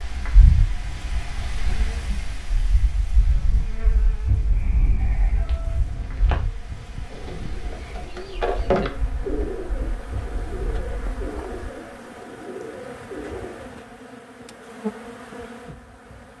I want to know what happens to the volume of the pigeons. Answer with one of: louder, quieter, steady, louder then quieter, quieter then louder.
louder then quieter.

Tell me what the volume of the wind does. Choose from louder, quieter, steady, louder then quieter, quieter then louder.
quieter.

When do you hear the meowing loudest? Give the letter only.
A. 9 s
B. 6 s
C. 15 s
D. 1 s
B.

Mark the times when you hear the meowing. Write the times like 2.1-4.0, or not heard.
4.3-6.4.